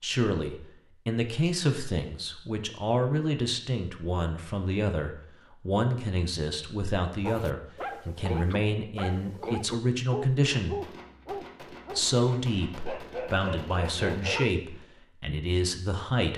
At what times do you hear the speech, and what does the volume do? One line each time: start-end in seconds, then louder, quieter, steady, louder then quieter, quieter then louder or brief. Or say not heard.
0.0-10.8 steady
11.9-16.3 steady.